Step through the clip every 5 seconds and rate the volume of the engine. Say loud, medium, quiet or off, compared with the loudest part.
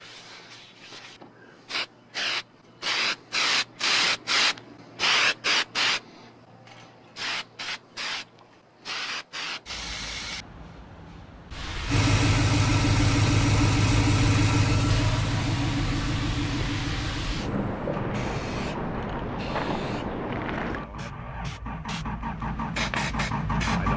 off, off, loud, medium, medium.